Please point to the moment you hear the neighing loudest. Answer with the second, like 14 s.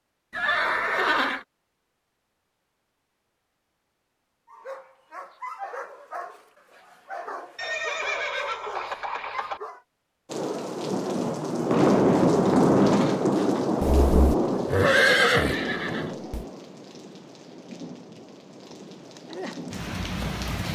15 s.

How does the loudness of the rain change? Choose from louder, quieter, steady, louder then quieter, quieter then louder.
quieter then louder.